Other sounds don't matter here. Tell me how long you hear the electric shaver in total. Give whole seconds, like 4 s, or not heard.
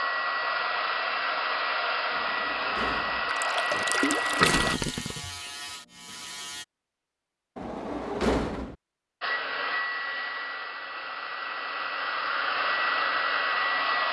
2 s.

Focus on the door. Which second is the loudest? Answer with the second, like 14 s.
8 s.